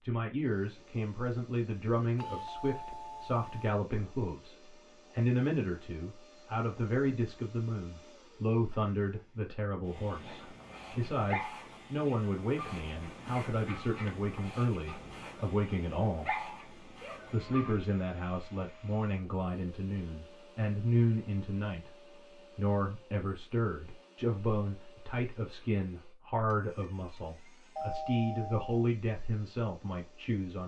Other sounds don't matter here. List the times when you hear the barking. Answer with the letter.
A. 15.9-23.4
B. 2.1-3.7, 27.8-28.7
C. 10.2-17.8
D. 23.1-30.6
C.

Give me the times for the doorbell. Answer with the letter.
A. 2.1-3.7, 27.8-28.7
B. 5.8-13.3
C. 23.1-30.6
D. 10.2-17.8
A.